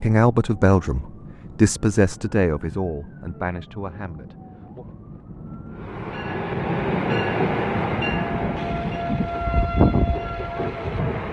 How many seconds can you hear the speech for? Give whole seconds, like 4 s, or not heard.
5 s.